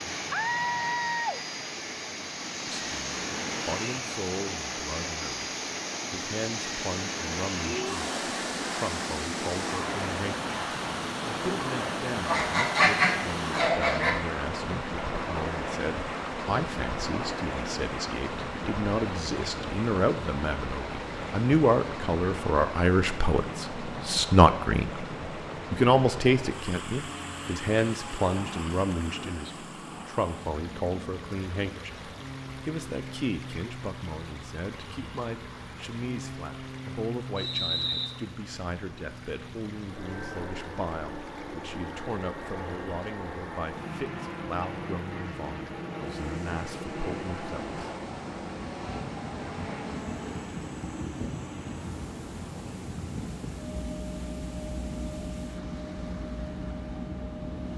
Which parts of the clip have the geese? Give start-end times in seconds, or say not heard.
12.2-14.1.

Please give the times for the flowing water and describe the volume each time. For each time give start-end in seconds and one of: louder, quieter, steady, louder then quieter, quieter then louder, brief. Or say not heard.
0.0-57.7 quieter.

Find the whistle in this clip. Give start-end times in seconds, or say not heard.
37.4-38.1.